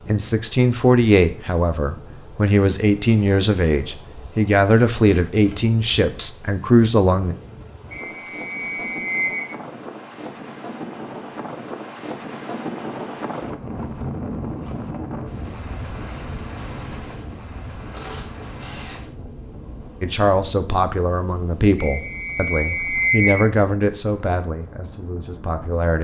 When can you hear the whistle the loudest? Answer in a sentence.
The loudest moment of the whistle is at 23 seconds.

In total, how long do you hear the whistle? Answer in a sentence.
You can hear the whistle for 3 seconds altogether.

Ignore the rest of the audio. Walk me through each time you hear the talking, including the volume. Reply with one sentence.
You can hear the talking from 0.1 to 7.3 s, at a steady volume; and from 20.0 to 25.9 s, getting quieter.